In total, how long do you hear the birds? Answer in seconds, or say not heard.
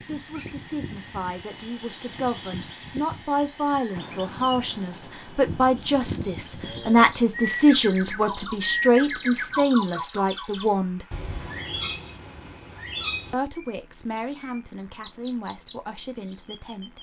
17 s.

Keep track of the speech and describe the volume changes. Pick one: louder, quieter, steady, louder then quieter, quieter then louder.
louder then quieter.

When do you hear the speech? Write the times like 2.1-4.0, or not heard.
0.1-11.1, 13.3-16.9.